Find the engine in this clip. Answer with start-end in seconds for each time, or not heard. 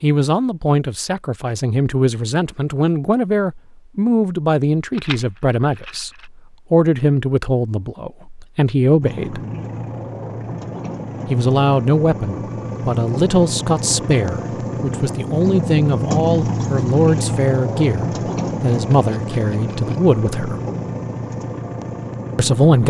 9.0-22.8.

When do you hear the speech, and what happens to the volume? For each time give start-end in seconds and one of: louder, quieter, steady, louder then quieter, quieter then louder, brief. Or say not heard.
0.0-9.4 steady
11.2-20.6 steady
22.4-22.8 brief.